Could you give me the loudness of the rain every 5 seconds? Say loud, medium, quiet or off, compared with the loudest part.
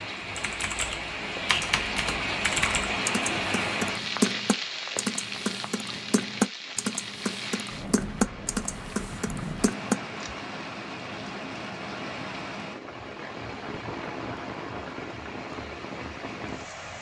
loud, medium, medium, medium.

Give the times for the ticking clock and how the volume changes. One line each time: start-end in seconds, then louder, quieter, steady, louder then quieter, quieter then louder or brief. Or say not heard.
not heard.